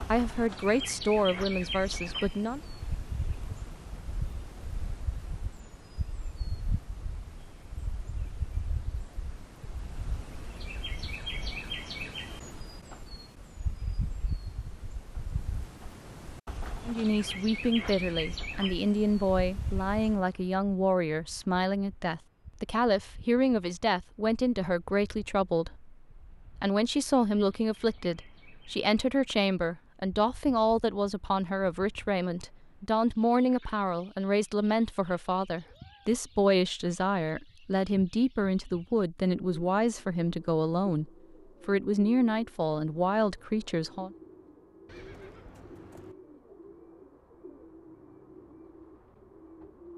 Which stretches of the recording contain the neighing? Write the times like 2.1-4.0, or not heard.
44.9-46.1.